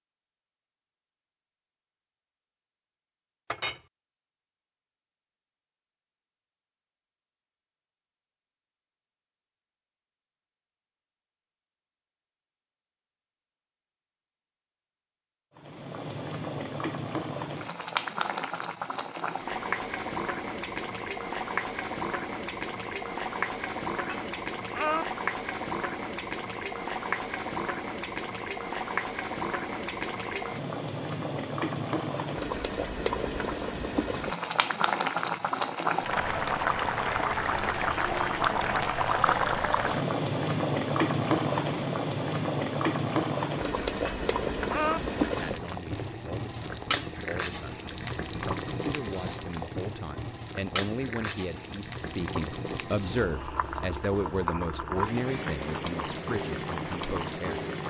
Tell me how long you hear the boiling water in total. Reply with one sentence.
The boiling water can be heard for 42 seconds in total.